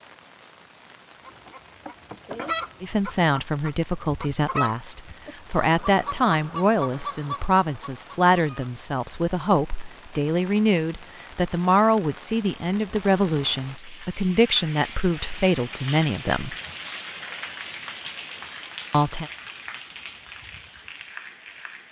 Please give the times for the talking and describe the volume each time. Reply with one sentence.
The talking can be heard from 2.8 to 16.6 s, at a steady volume; and briefly from 18.9 to 19.3 s.